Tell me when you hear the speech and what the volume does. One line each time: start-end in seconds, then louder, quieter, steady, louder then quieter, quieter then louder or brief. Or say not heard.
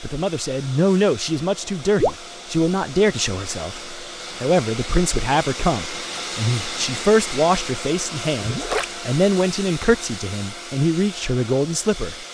0.0-12.2 steady.